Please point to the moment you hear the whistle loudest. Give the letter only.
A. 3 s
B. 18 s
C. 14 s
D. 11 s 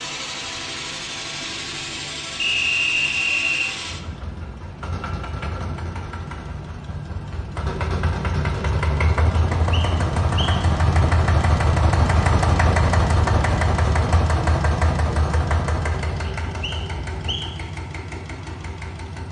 A.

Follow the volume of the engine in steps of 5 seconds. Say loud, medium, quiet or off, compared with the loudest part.
medium, medium, loud, medium.